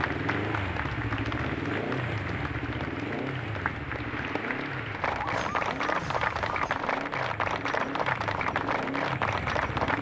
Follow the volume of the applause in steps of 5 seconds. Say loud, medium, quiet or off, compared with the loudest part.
medium, loud.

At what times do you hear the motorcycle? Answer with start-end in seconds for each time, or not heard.
0.0-9.9.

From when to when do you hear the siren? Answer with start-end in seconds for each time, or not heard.
5.2-6.8.